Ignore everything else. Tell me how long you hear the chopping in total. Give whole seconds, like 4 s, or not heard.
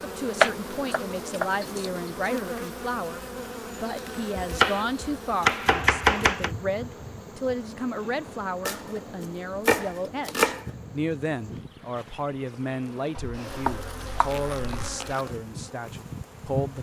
8 s.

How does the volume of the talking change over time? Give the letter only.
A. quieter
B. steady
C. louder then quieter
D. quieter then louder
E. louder
B.